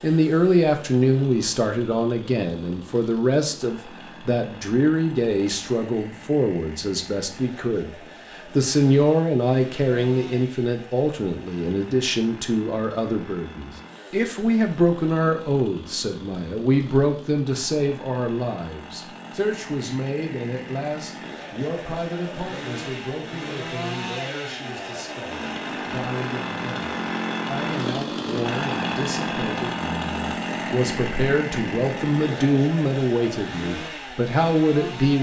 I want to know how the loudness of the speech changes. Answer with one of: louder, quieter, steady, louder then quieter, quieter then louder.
quieter then louder.